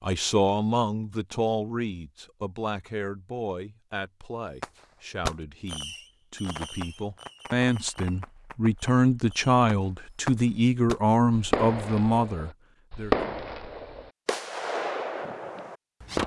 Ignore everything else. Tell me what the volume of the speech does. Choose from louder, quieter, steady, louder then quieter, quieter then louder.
quieter then louder.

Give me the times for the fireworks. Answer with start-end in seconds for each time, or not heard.
4.6-16.2.